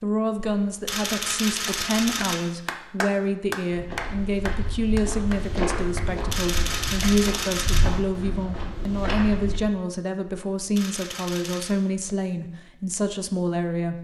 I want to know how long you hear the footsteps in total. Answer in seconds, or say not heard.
6 s.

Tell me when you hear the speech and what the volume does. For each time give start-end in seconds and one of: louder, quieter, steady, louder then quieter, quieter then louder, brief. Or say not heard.
0.0-13.9 steady.